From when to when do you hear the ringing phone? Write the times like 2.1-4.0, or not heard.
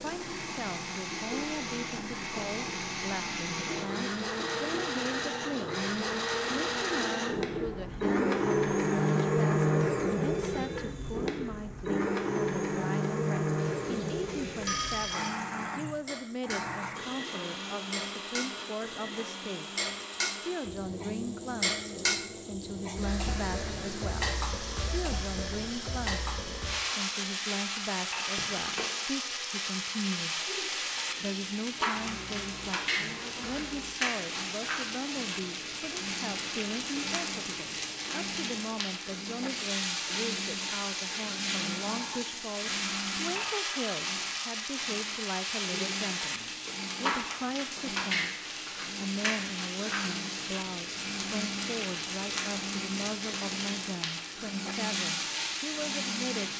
13.6-15.3, 28.4-28.9.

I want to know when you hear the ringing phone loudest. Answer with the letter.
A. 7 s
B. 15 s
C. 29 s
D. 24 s
B.